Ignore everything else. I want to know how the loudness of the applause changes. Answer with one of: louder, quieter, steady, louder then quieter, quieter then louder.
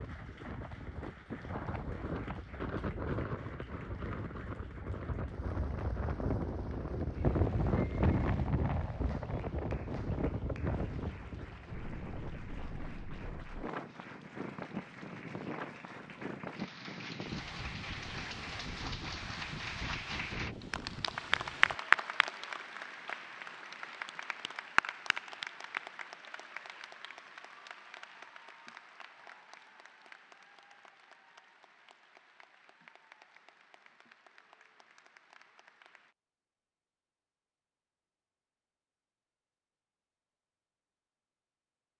louder then quieter.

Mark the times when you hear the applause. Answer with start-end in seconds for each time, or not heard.
0.0-36.1.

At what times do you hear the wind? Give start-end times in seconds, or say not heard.
0.0-21.8.